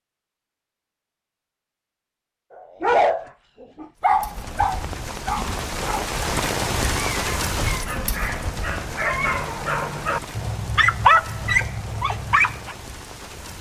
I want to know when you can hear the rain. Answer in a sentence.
You can hear the rain from 4.0 to 13.5 s.